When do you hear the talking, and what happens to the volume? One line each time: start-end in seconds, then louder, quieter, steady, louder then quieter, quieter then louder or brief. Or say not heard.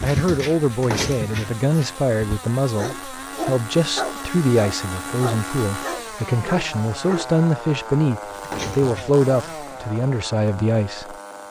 0.0-11.2 steady.